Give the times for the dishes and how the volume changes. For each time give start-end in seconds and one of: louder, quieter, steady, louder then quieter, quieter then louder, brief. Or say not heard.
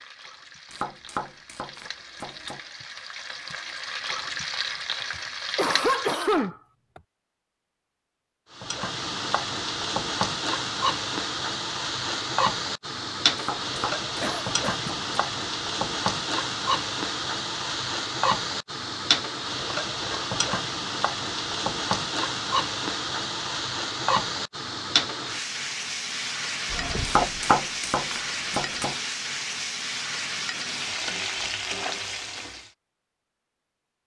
not heard.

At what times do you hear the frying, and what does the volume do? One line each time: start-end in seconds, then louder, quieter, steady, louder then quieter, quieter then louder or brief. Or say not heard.
0.0-6.5 louder
8.5-32.7 steady.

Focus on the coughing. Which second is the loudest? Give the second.
6 s.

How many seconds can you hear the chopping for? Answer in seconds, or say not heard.
6 s.